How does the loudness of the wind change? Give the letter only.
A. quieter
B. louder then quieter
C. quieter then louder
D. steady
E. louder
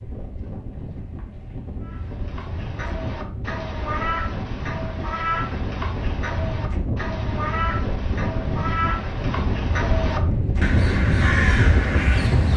E.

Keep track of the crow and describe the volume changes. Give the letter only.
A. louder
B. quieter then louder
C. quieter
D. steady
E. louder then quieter
A.